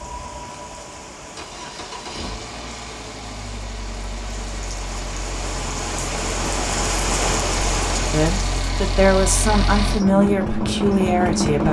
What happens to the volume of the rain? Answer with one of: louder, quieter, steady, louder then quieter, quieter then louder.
louder.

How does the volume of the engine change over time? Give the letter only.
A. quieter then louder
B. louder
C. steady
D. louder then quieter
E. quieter
B.